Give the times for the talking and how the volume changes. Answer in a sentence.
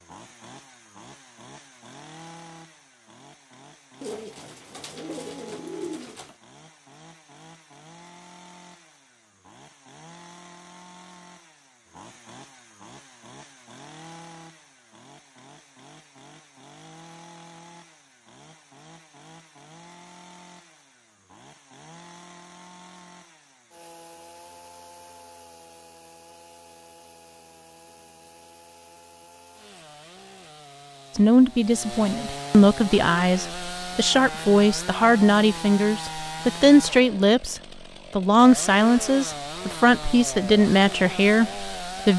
You can hear the talking from 31.1 to 42.1 s, at a steady volume.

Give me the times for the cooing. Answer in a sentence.
The cooing can be heard from 4.0 to 6.3 s.